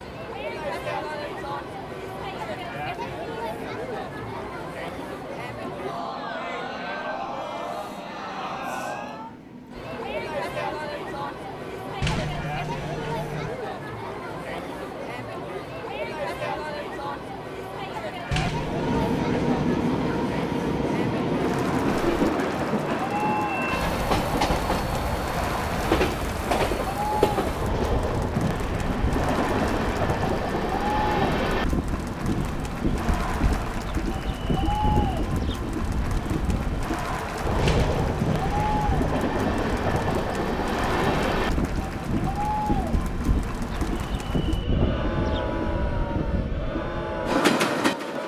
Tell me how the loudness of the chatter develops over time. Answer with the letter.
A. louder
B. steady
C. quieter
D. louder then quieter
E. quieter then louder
B.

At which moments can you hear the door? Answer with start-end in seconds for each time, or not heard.
12.0-13.5, 18.3-19.8, 37.6-39.0.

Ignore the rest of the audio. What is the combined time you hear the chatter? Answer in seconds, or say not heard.
48 s.